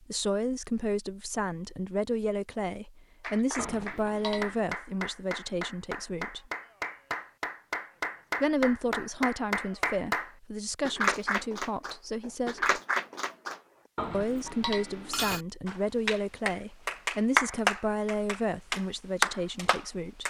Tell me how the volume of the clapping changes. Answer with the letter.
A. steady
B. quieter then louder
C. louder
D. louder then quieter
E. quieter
C.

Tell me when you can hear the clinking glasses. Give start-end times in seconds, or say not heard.
3.5-4.7, 13.9-15.4.